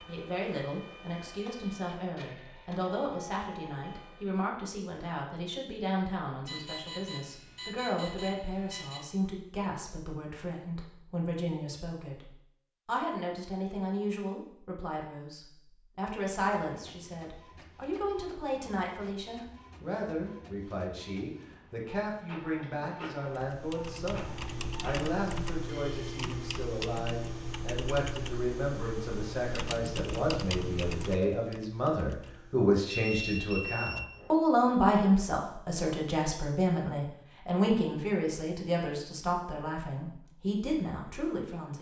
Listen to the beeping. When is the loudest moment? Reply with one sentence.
The volume of the beeping peaks at 33 seconds.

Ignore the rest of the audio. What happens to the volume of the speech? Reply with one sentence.
The loudness of the speech goes up.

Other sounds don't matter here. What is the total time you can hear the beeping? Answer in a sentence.
You can hear the beeping for 4 seconds altogether.